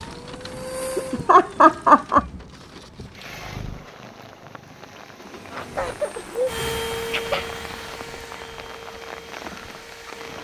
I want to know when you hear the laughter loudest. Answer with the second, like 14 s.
2 s.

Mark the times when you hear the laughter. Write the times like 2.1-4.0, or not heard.
0.9-2.2, 5.5-7.5.